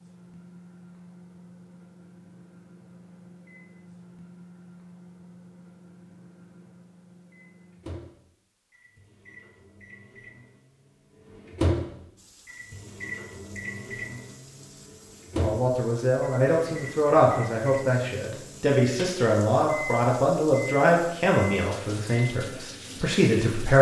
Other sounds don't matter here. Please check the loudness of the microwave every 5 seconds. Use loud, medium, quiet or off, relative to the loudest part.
quiet, quiet, loud, loud, off.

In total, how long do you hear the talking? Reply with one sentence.
The talking can be heard for 8 seconds in total.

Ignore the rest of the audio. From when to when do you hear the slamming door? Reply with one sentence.
The slamming door can't be heard in this clip.